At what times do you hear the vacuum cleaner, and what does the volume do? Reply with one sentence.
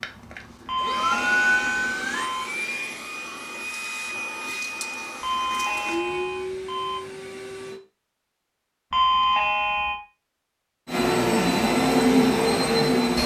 You can hear the vacuum cleaner from 0.0 to 7.8 s, getting quieter; and briefly from 10.8 to 13.2 s.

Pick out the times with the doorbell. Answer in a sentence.
You can hear the doorbell from 0.7 to 2.5 s, from 5.2 to 7.0 s and from 8.9 to 10.0 s.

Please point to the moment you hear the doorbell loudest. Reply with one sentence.
The volume of the doorbell peaks at 9 seconds.